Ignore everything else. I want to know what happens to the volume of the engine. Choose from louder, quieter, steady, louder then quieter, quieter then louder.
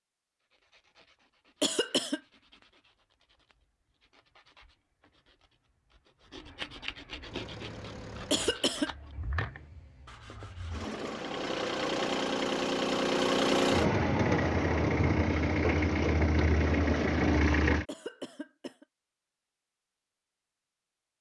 louder.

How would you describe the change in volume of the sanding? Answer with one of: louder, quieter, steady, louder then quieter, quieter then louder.
louder.